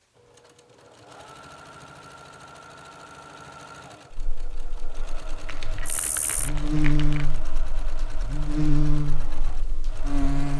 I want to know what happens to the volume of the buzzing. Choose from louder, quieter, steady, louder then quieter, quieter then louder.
louder then quieter.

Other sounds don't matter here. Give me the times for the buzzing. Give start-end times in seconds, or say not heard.
4.1-10.5.